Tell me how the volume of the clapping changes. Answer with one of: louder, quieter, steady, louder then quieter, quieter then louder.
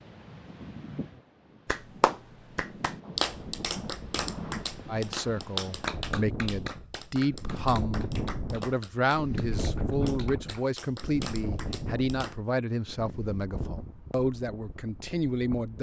quieter.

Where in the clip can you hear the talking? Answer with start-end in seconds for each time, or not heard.
4.8-15.7.